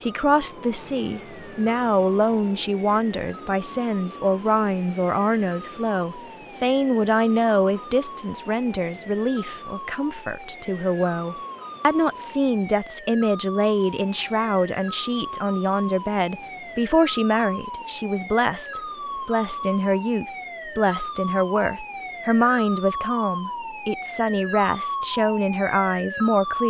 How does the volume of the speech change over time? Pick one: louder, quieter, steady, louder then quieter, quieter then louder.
steady.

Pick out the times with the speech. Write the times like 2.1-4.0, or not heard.
0.0-26.6.